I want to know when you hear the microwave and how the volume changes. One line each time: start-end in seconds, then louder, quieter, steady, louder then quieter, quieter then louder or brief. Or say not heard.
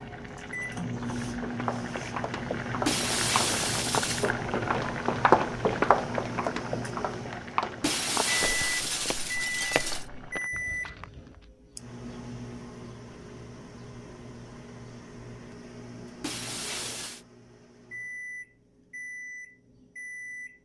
0.0-20.5 quieter.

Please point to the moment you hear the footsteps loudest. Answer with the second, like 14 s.
5 s.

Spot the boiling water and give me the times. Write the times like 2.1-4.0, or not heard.
0.0-10.5.